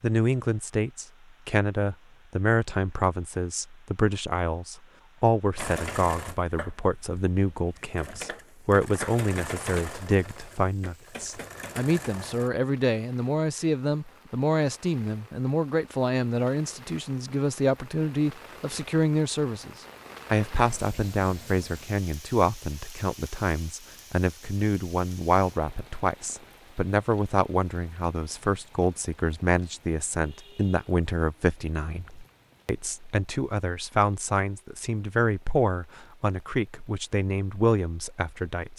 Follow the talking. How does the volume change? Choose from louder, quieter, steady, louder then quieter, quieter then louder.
steady.